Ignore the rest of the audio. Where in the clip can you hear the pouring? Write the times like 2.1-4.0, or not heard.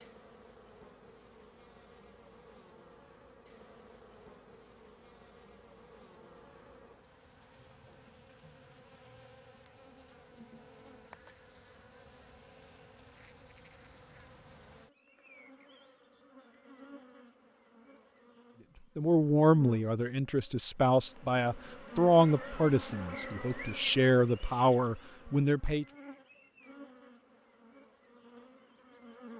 not heard.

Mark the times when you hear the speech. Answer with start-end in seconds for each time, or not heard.
18.9-25.9.